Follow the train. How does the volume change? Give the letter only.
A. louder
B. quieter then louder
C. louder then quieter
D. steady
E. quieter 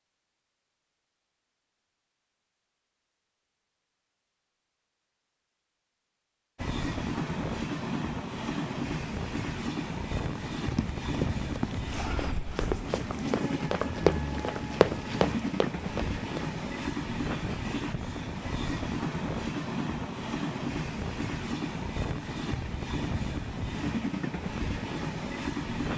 D.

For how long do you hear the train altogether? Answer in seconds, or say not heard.
19 s.